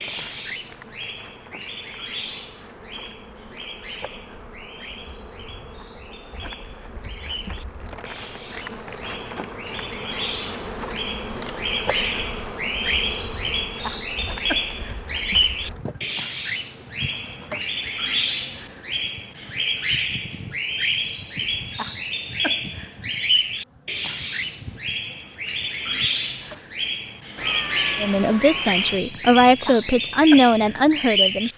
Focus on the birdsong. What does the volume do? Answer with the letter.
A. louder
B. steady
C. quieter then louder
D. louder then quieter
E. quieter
A.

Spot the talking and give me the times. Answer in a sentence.
The talking can be heard from 28.0 to 31.5 s.